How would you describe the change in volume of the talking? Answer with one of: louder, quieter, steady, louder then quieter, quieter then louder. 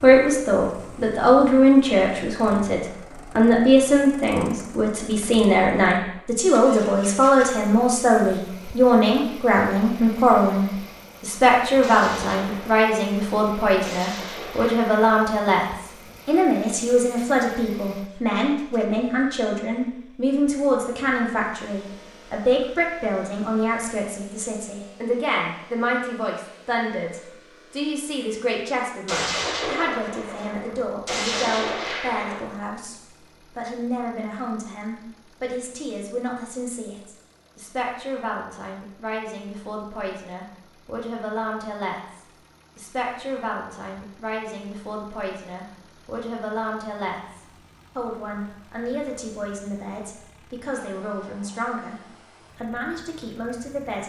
quieter.